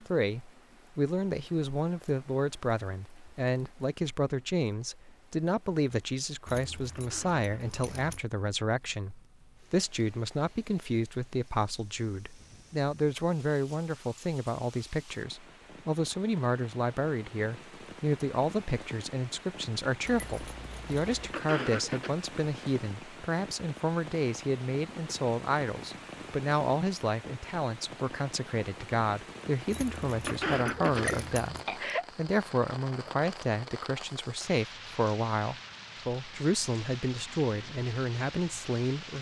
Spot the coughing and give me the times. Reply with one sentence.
You can hear the coughing from 7.0 to 7.5 s, from 21.3 to 22.1 s and from 30.2 to 32.0 s.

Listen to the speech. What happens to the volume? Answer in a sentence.
The volume of the speech stays about the same.